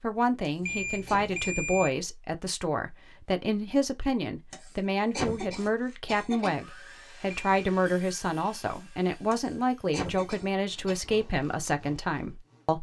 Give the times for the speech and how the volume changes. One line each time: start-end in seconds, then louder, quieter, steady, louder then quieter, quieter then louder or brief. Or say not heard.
0.0-12.7 steady.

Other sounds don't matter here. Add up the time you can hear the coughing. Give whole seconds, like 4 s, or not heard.
5 s.